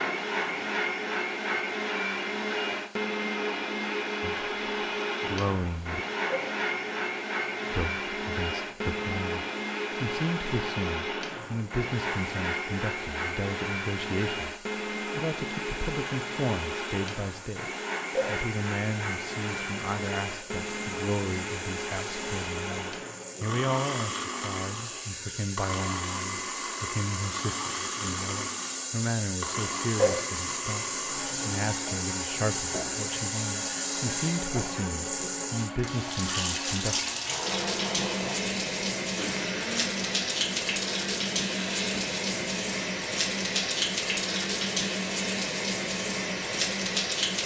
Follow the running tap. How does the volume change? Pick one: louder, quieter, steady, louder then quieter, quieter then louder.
louder.